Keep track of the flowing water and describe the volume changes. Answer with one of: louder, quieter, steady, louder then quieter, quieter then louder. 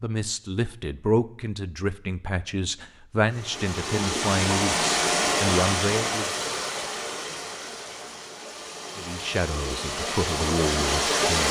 quieter then louder.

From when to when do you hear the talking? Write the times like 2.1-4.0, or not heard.
0.0-6.4, 8.9-11.4.